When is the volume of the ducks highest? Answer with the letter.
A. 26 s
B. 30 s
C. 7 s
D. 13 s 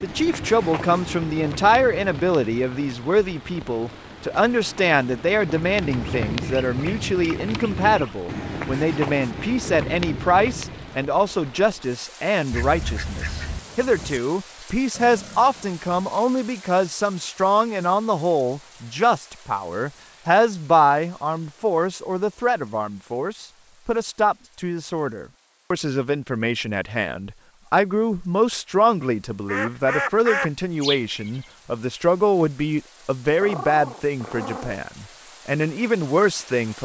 B.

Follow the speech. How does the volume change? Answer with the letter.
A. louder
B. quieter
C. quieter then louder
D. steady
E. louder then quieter
D.